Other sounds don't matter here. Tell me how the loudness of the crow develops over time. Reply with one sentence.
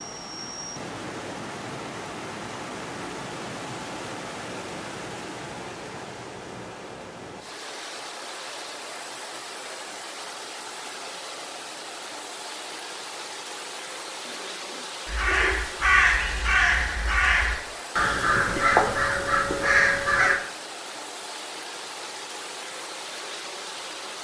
The volume of the crow stays about the same.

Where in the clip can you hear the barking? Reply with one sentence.
You can hear the barking from 14.2 to 15.8 s.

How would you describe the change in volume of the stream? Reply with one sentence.
The loudness of the stream stays about the same.